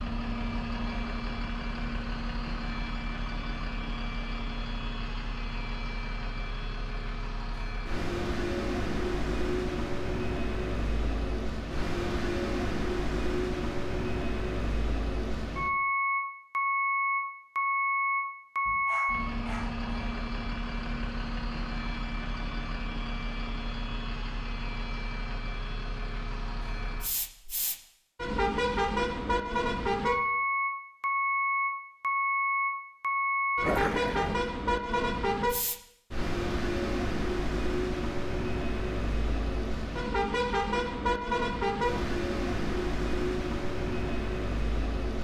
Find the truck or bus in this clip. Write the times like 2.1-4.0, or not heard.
0.0-45.2.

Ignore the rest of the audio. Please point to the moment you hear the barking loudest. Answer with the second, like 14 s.
34 s.